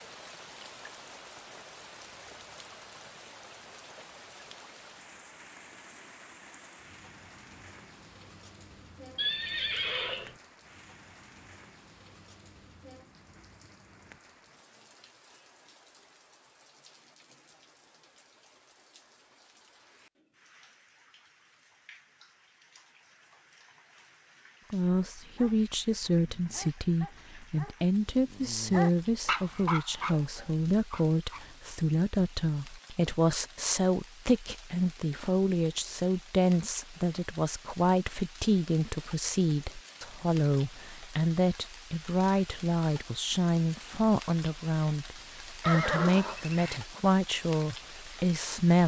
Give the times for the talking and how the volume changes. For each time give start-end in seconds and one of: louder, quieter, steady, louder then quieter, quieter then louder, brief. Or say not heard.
24.7-48.8 steady.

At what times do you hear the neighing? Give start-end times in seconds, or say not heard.
9.2-10.3, 45.6-46.8.